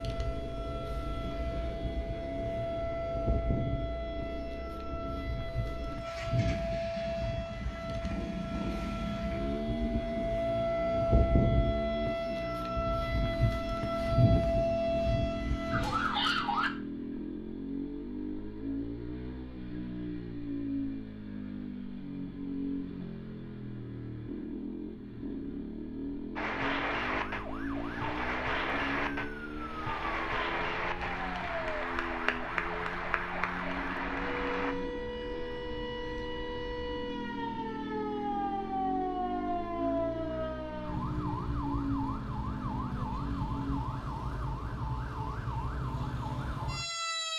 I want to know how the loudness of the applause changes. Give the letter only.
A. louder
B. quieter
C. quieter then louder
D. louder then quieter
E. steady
E.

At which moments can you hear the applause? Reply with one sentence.
You can hear the applause from 26.4 to 34.8 s.